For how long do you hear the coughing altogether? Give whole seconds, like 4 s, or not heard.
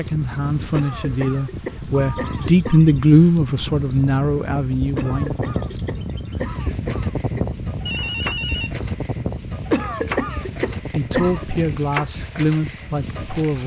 6 s.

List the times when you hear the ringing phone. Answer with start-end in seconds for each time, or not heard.
1.9-2.9, 7.8-8.8.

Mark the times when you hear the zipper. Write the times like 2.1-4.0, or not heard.
not heard.